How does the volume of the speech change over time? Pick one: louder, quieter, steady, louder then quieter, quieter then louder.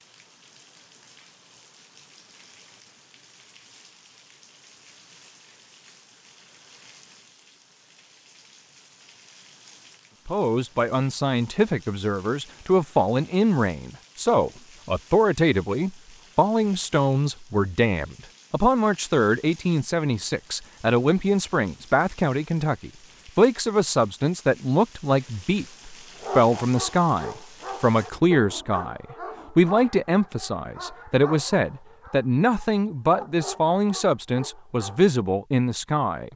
steady.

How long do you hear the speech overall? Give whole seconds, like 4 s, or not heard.
26 s.